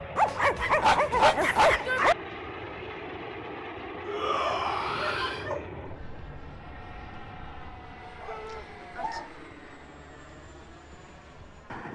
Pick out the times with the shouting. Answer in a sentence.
You can hear the shouting from 1.1 to 2.1 s, from 4.0 to 5.5 s and from 8.2 to 8.7 s.